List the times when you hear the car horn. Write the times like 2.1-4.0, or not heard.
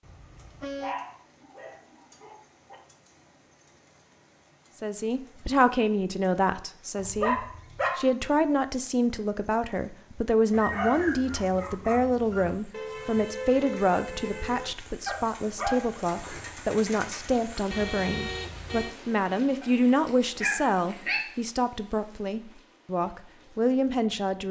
0.0-0.9, 12.7-14.8, 17.7-18.9.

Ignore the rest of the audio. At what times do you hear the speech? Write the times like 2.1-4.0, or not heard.
4.8-24.4.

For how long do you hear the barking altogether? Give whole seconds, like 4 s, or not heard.
8 s.